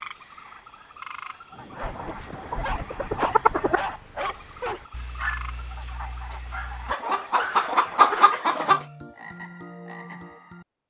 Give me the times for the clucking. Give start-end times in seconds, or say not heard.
1.8-3.8, 6.8-8.8.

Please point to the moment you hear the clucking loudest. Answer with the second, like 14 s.
8 s.